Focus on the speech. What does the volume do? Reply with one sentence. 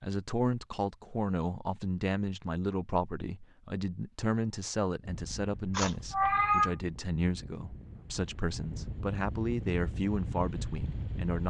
The volume of the speech stays about the same.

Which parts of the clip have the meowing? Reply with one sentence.
The meowing can be heard from 5.8 to 6.8 s.